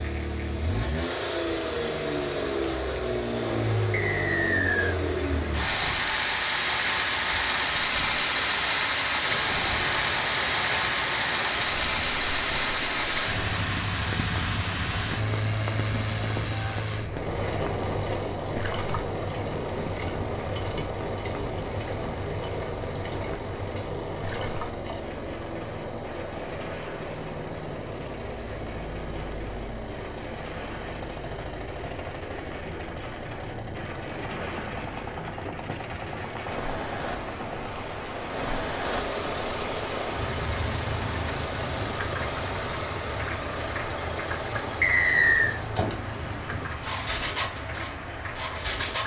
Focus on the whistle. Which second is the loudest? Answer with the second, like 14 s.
45 s.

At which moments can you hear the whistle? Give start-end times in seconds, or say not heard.
3.9-5.0, 44.8-45.5.